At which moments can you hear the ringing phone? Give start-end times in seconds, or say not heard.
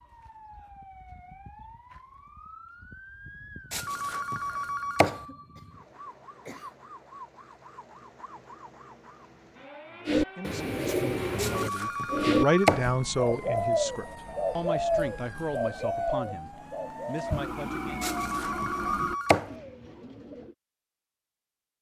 3.7-5.2, 11.3-12.8, 18.0-19.5.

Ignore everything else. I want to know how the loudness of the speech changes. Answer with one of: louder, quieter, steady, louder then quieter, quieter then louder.
louder then quieter.